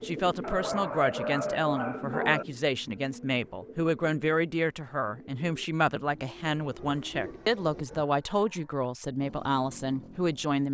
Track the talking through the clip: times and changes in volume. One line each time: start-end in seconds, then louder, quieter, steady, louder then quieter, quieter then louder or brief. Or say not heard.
0.0-10.7 steady.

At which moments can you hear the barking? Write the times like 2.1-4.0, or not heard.
0.4-2.5, 7.7-8.8.